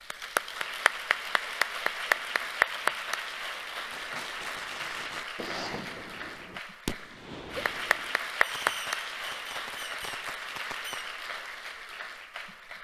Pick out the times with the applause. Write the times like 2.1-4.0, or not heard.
0.0-12.8.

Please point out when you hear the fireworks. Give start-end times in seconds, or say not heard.
3.9-11.1.